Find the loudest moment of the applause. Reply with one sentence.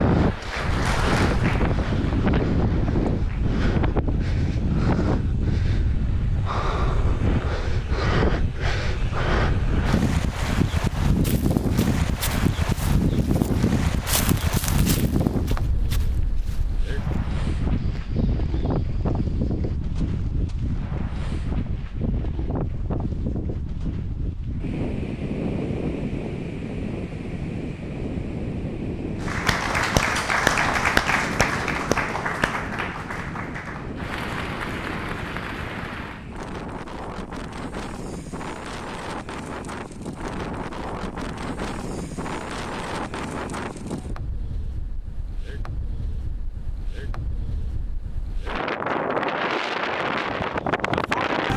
The loudest moment of the applause is at 30 seconds.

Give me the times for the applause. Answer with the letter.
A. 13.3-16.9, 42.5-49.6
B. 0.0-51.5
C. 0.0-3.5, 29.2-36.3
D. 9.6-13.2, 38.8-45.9
C.